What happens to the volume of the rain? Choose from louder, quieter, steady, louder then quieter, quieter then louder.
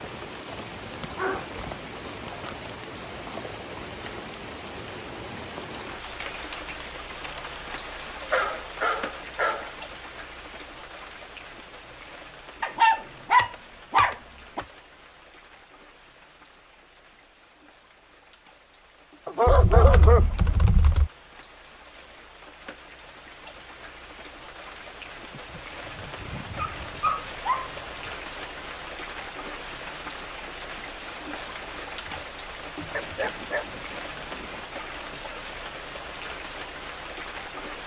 quieter then louder.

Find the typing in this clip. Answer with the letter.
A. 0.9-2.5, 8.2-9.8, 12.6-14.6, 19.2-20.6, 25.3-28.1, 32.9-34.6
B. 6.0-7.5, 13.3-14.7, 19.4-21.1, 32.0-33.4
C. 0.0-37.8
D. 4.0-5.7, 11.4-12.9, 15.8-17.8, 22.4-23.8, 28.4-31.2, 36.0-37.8
B.